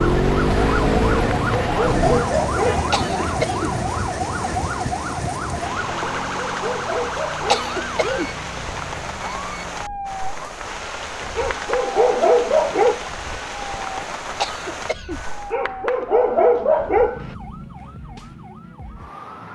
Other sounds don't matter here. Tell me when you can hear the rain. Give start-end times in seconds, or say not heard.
0.0-15.6.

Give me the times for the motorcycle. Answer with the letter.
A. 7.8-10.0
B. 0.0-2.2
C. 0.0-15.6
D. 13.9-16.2
B.